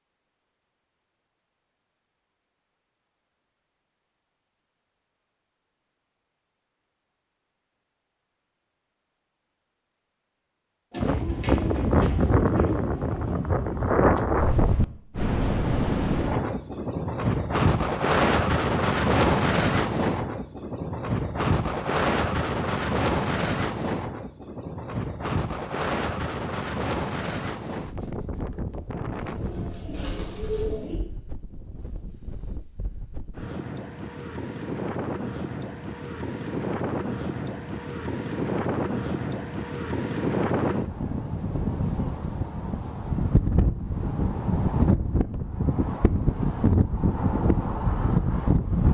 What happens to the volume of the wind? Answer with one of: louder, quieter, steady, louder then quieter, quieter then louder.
quieter then louder.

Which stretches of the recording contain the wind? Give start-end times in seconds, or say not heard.
10.9-48.8.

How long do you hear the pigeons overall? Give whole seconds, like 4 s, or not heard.
4 s.